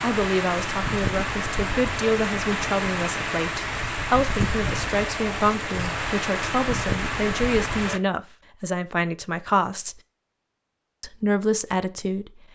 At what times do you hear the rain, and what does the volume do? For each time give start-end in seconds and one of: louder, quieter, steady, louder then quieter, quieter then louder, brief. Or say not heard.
0.0-8.0 steady.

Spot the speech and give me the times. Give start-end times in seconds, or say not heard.
0.0-9.9, 11.0-12.3.